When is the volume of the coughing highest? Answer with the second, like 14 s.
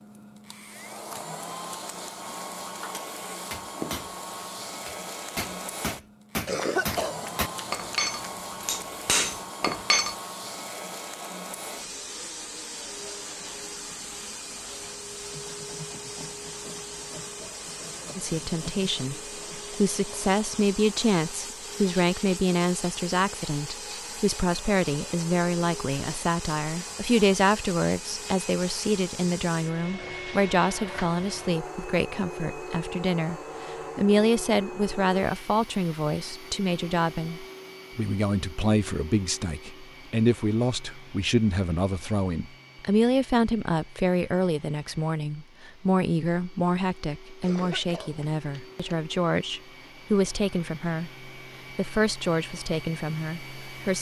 7 s.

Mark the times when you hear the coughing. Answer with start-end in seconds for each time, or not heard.
6.5-8.3, 47.4-48.9.